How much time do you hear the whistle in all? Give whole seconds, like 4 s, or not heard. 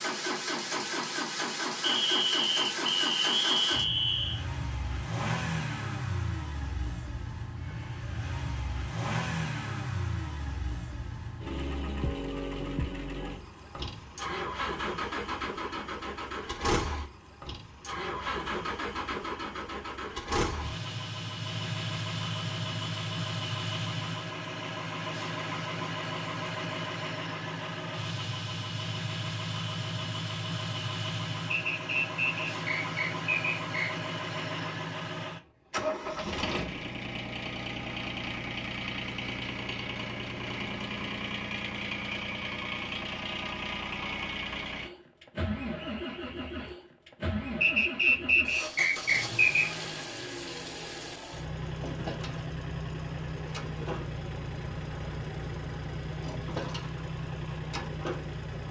7 s.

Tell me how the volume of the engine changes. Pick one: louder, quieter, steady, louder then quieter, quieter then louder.
steady.